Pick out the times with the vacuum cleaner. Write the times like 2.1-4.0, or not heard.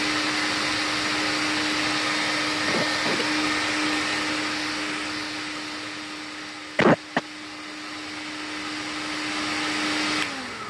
0.0-10.6.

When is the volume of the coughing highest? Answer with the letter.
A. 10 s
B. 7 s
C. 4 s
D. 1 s
B.